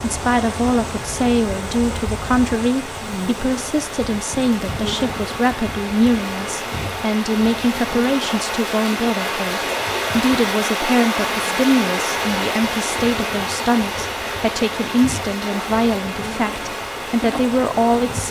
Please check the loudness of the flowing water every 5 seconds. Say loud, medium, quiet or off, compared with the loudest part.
medium, loud, loud, medium.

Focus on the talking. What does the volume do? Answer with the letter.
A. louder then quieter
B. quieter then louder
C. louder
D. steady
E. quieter
D.